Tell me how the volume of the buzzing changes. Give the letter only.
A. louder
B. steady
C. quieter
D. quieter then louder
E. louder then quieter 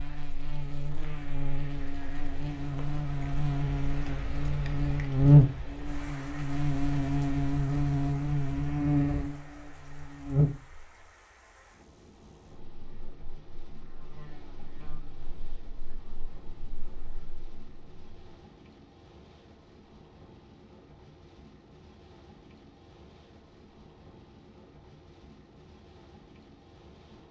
E.